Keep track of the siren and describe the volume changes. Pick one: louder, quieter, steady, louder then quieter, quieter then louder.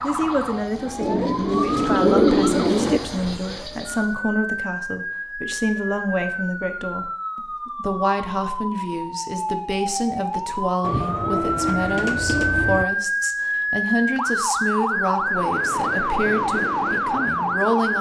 louder.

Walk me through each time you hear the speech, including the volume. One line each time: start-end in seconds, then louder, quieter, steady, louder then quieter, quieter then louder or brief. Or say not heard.
0.0-17.9 steady.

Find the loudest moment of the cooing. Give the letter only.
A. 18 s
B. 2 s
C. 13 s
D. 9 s
B.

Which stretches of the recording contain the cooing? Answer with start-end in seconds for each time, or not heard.
1.0-3.0, 10.8-12.8.